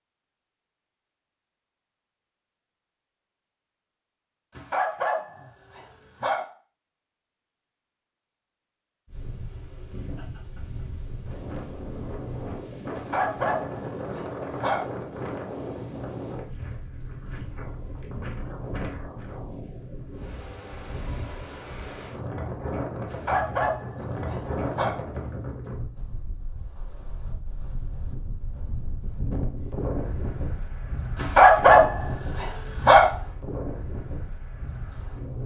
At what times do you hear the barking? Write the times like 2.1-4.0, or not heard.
4.5-6.4, 12.9-14.8, 23.1-24.9, 31.1-33.0.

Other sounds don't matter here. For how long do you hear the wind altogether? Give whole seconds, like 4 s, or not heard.
26 s.